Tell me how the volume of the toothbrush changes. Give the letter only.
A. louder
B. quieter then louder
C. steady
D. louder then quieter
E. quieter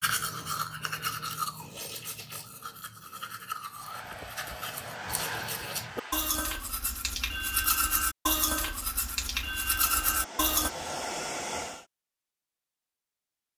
B.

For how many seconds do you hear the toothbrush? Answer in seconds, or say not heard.
11 s.